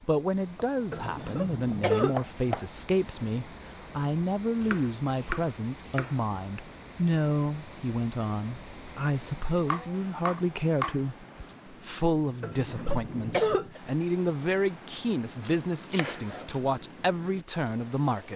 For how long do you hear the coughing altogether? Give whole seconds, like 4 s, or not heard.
3 s.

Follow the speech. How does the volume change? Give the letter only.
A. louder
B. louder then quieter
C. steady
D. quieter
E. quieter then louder
C.